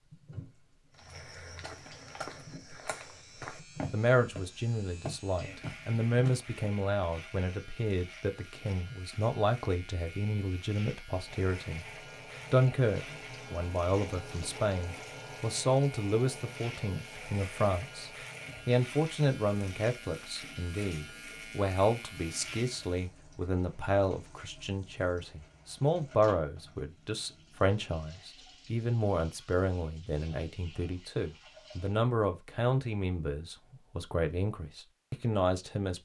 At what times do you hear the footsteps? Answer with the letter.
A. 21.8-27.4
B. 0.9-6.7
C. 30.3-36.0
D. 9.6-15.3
B.